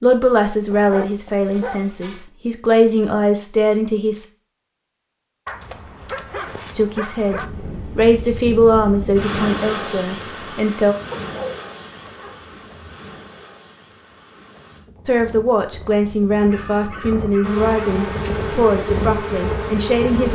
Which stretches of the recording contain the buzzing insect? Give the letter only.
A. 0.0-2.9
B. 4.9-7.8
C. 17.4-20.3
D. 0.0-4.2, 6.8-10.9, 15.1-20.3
C.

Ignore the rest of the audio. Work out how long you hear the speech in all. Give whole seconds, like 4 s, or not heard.
14 s.